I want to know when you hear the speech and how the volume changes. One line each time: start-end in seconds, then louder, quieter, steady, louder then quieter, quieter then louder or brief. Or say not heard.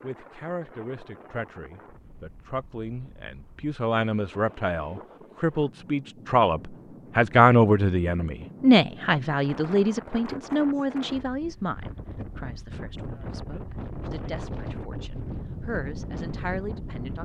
0.0-17.2 louder then quieter.